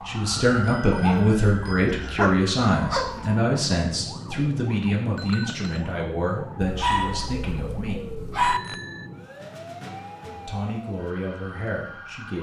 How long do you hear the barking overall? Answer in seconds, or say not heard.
4 s.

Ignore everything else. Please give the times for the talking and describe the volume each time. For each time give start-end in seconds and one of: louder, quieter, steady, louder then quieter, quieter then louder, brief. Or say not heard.
0.1-8.0 quieter
10.4-12.3 brief.